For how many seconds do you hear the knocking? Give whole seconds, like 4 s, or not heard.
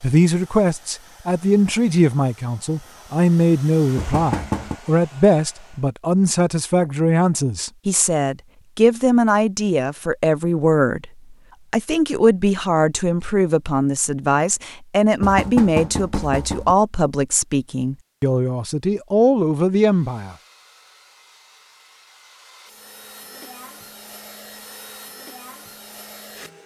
2 s.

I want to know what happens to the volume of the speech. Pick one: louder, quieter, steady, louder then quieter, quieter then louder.
steady.